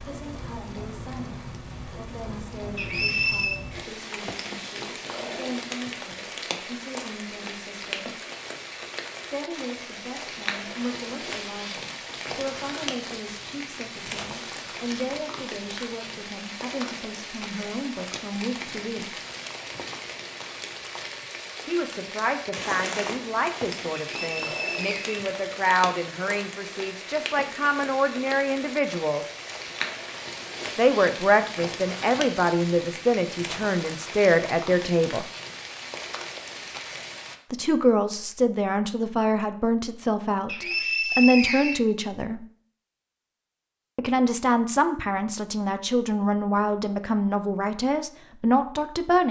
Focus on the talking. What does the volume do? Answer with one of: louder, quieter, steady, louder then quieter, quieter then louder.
louder.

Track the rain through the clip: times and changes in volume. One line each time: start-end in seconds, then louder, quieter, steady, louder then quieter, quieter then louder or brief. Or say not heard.
0.0-37.4 steady.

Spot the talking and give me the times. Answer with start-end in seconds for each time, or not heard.
0.0-8.2, 9.3-19.2, 21.6-29.2, 30.8-35.2, 37.5-42.5, 44.0-49.2.